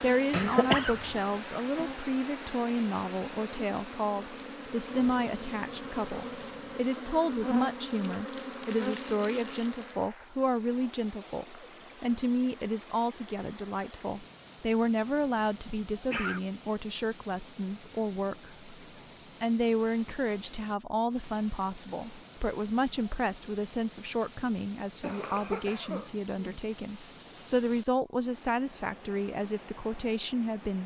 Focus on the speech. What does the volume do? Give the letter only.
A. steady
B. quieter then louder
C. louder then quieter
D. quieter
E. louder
A.